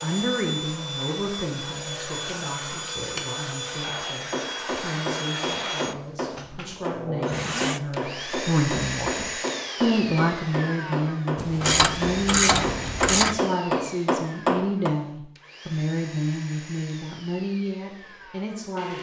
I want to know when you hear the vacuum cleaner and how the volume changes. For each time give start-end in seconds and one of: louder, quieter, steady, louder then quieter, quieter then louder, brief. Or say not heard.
0.0-18.9 quieter.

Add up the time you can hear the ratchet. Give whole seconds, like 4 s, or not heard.
2 s.